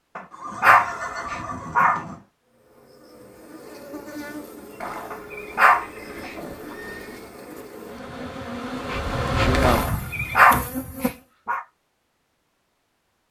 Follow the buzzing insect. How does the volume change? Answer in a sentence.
The loudness of the buzzing insect goes up.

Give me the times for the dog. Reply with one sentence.
The dog can be heard from 0.1 to 2.0 s, from 5.1 to 6.3 s and from 9.8 to 11.6 s.